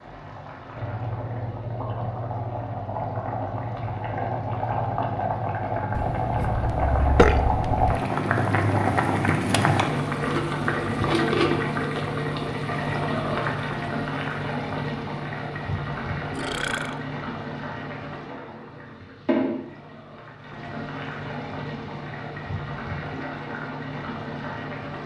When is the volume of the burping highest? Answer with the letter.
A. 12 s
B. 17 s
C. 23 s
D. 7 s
D.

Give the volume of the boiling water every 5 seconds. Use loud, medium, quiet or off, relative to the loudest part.
medium, loud, loud, medium, medium.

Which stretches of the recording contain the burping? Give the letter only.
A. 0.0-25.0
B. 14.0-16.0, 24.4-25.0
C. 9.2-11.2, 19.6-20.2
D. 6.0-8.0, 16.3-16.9
D.